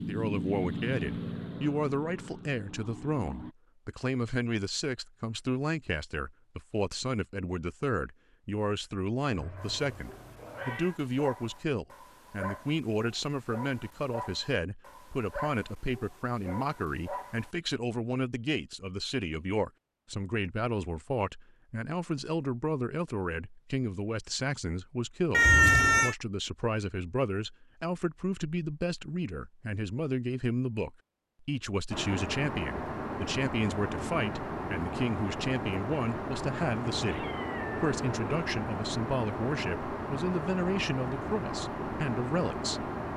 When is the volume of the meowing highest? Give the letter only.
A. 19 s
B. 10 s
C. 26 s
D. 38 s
C.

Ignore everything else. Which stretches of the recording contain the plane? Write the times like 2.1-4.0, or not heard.
0.0-3.5, 31.9-43.1.